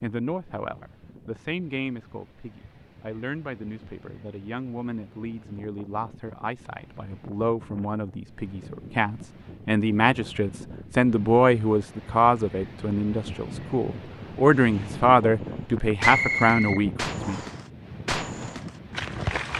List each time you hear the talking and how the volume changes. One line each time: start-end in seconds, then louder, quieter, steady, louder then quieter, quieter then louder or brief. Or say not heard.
0.0-17.4 louder.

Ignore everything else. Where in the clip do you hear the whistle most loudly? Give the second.
16 s.